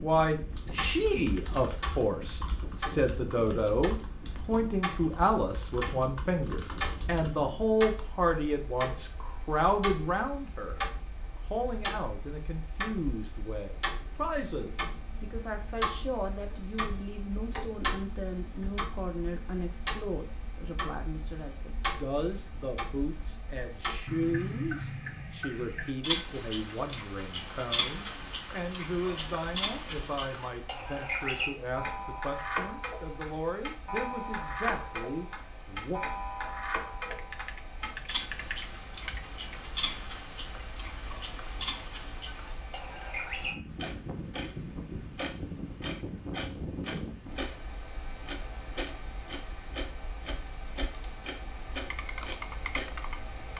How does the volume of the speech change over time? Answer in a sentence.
The loudness of the speech goes down.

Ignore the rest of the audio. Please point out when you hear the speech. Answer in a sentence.
You can hear the speech from 0.0 to 36.0 s.